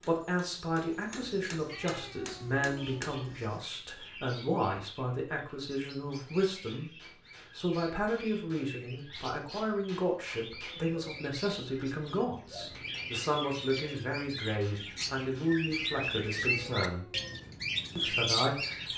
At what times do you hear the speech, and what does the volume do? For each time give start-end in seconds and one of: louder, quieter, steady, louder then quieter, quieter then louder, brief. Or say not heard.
0.0-17.1 steady
17.9-18.9 brief.